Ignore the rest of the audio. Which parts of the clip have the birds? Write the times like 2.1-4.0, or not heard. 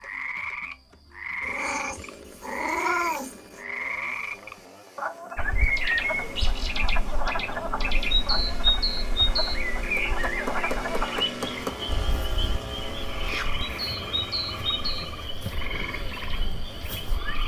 5.3-17.4.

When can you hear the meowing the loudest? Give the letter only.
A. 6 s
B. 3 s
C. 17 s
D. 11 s
B.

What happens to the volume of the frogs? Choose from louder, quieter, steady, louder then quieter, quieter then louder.
steady.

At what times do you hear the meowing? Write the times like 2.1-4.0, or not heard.
1.4-3.6.